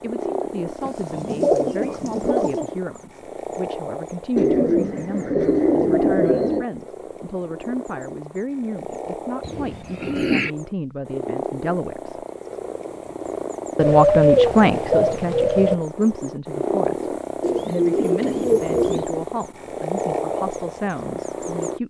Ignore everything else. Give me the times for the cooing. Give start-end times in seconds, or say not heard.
0.8-2.6, 4.3-6.7, 9.4-10.5, 13.8-15.8, 17.4-19.1.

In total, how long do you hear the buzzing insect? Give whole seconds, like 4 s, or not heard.
not heard.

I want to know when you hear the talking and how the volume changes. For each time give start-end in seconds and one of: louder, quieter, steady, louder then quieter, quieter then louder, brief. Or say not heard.
0.0-12.2 steady
13.8-21.8 quieter.